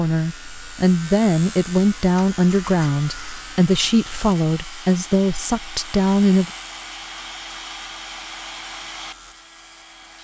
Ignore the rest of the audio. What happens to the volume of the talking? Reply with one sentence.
The volume of the talking stays about the same.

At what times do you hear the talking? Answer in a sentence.
You can hear the talking from 0.0 to 6.5 s.